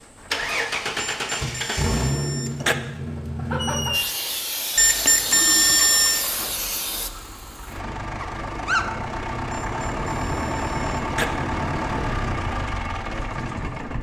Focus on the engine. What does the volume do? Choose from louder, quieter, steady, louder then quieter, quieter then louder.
quieter then louder.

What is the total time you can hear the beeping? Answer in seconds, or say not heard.
5 s.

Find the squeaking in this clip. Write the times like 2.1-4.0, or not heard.
3.5-4.1, 8.2-8.9.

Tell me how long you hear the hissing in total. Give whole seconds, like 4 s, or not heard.
3 s.